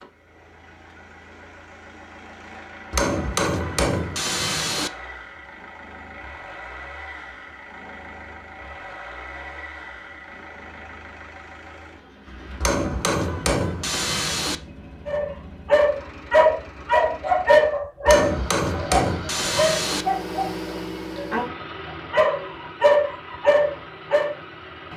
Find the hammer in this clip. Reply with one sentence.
The hammer can be heard from 2.9 to 4.9 s, from 12.6 to 14.6 s and from 18.1 to 20.1 s.